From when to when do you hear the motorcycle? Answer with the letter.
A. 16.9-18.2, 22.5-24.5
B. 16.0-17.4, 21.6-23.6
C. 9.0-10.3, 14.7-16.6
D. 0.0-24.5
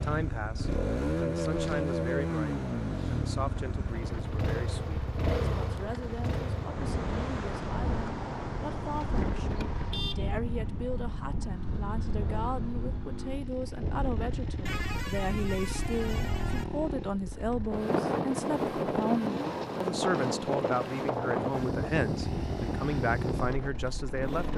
D.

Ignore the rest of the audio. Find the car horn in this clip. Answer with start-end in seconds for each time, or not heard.
9.0-10.3, 14.7-16.6.